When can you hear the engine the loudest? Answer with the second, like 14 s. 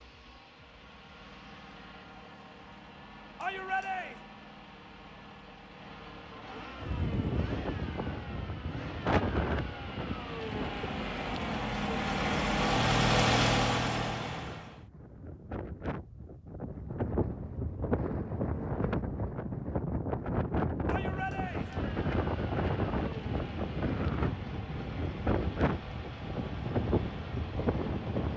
13 s.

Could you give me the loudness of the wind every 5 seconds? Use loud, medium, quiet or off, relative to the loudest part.
off, loud, medium, loud, loud, loud.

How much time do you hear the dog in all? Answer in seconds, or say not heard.
not heard.